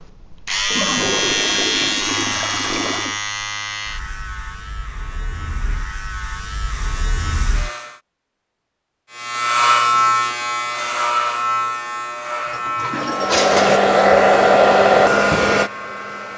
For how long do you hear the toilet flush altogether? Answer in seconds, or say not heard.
4 s.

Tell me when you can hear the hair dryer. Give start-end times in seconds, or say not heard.
13.1-16.3.